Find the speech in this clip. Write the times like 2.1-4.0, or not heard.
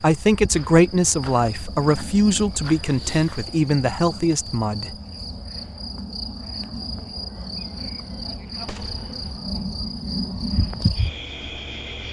0.0-5.0.